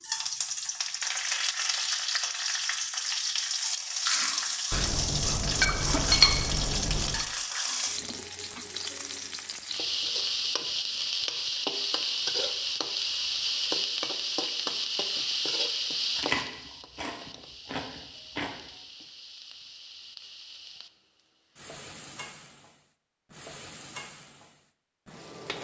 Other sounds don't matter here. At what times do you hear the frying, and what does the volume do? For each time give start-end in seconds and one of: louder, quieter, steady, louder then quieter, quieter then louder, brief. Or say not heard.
0.0-25.5 quieter.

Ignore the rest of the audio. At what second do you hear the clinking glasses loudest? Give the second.
6 s.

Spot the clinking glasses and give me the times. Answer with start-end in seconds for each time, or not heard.
4.7-7.2.